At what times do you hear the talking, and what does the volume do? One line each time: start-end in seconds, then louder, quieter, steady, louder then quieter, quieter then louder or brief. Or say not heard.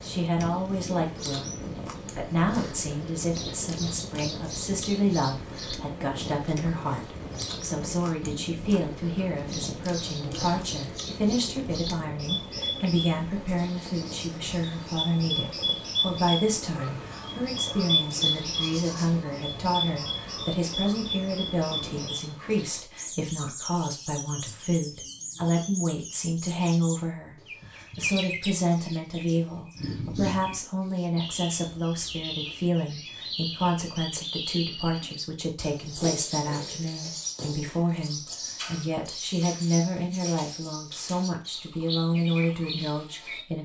0.0-1.5 brief
2.1-43.6 steady.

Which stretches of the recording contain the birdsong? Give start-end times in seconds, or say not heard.
0.0-43.6.